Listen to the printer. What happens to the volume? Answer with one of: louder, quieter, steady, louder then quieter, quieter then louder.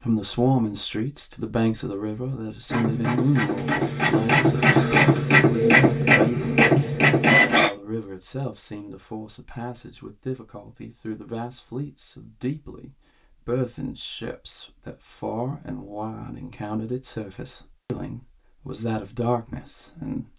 louder.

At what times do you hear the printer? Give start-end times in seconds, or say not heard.
2.6-7.7.